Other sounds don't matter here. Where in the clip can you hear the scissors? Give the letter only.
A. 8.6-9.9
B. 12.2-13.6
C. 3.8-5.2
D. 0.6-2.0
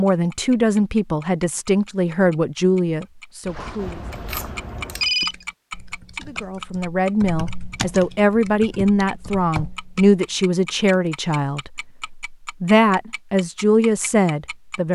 C.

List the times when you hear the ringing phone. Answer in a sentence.
You can hear the ringing phone from 3.5 to 5.5 s.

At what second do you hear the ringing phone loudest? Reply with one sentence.
The loudest moment of the ringing phone is at 5 seconds.